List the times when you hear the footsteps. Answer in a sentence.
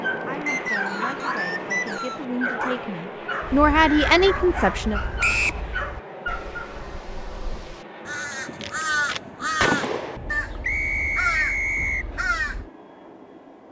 You can't hear the footsteps here.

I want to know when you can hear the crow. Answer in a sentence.
The crow can be heard from 3.4 to 12.7 s.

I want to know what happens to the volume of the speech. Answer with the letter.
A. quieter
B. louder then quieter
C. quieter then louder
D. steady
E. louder
E.